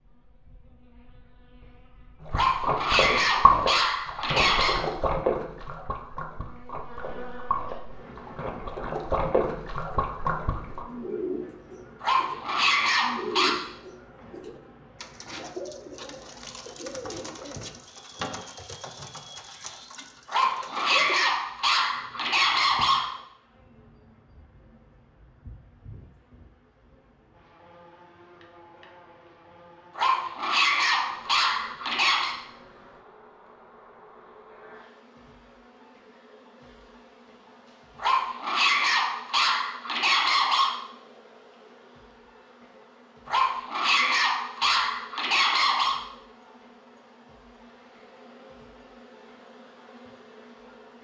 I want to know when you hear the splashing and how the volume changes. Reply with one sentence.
You can hear the splashing from 2.2 to 10.8 s, getting quieter then louder.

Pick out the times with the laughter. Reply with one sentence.
You can't hear the laughter here.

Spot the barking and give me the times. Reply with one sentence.
The barking can be heard from 2.3 to 4.8 s, from 12.0 to 13.6 s, from 20.2 to 23.1 s, from 29.9 to 32.4 s, from 38.0 to 40.8 s and from 43.2 to 46.0 s.